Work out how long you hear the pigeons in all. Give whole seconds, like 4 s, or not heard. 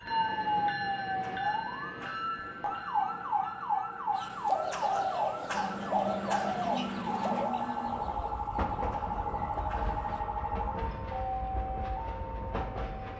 6 s.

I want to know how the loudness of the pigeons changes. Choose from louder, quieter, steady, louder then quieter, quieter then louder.
quieter.